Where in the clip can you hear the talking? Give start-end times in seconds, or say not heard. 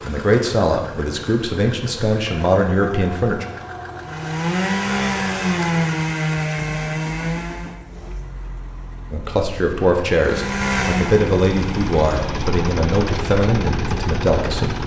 0.0-3.5, 9.1-14.8.